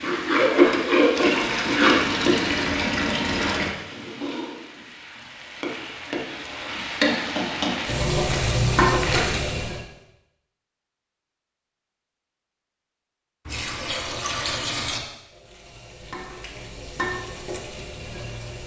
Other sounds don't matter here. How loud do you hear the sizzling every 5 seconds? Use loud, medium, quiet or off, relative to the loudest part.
loud, loud, off, quiet.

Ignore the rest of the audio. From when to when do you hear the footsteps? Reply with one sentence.
You can't hear the footsteps here.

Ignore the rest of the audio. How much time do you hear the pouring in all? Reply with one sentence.
The pouring can be heard for 4 seconds in total.